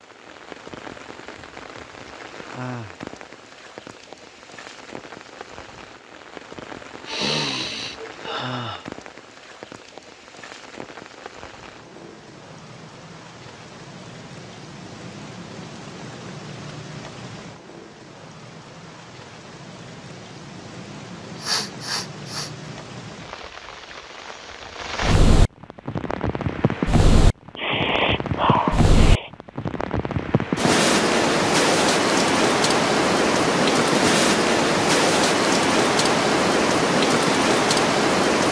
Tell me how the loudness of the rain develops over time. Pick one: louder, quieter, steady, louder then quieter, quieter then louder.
louder.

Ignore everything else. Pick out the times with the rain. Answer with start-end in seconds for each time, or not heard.
0.0-38.4.